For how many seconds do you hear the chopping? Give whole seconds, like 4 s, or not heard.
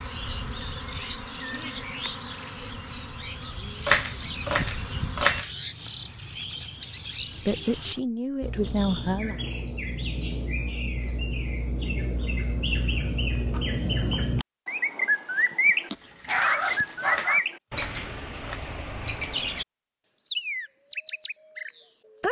3 s.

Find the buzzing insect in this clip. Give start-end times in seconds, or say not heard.
0.0-5.4.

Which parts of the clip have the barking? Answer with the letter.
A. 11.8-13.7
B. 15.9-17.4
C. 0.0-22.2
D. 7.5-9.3
B.